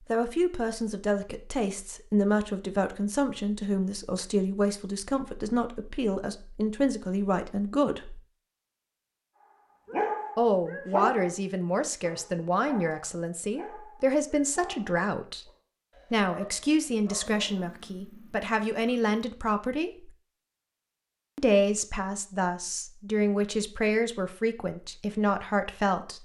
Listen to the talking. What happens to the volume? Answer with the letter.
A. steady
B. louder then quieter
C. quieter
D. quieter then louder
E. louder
A.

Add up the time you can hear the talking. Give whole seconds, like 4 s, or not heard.
22 s.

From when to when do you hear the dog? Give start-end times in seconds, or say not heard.
9.8-17.6.